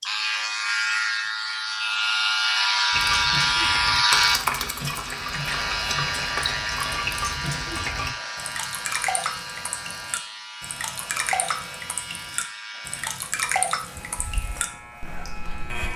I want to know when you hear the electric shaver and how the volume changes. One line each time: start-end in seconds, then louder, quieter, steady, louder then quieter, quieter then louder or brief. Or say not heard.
0.0-15.9 quieter.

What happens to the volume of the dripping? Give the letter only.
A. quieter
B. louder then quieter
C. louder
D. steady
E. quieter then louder
D.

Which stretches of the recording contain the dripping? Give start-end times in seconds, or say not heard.
2.9-15.9.